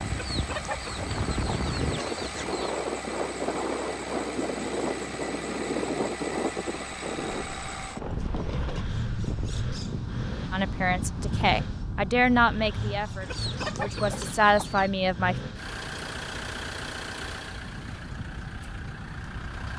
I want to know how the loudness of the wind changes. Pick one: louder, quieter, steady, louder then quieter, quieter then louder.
quieter.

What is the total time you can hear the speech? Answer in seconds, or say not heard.
5 s.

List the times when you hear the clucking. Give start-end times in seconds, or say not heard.
0.1-2.8, 13.2-14.9.